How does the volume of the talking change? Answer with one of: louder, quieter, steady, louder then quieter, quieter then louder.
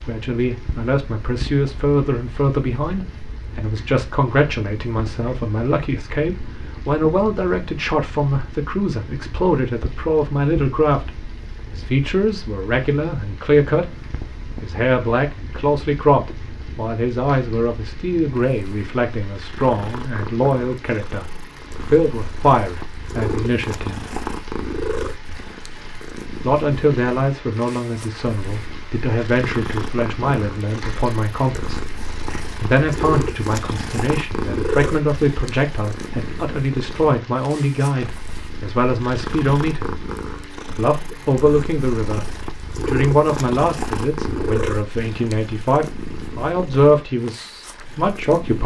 steady.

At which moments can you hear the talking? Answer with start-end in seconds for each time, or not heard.
0.1-13.8, 14.6-24.1, 26.4-40.0, 40.7-48.6.